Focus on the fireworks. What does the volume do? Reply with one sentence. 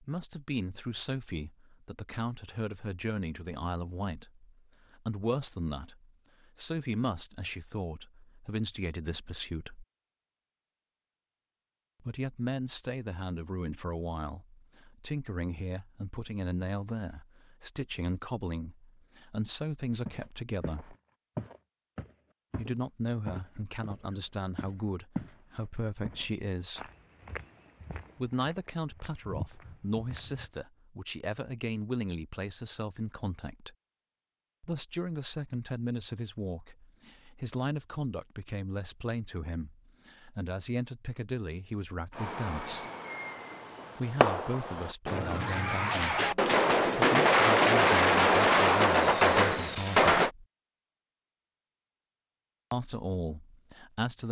The volume of the fireworks goes up.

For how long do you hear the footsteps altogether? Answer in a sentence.
The footsteps can be heard for 10 seconds in total.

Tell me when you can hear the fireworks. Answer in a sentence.
The fireworks can be heard from 42.1 to 50.3 s.